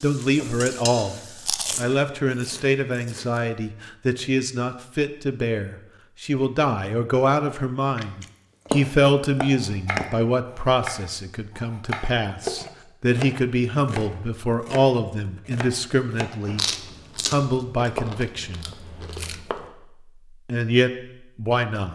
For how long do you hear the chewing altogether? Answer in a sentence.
You can hear the chewing for 7 seconds altogether.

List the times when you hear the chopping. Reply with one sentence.
The chopping can be heard from 9.6 to 19.6 s.